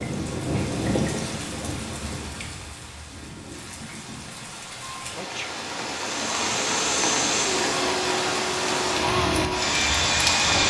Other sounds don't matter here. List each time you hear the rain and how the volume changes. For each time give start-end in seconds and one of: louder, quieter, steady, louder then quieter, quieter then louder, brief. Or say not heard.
0.0-10.6 quieter then louder.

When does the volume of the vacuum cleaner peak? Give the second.
10 s.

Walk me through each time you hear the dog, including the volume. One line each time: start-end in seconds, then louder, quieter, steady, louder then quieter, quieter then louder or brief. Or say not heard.
not heard.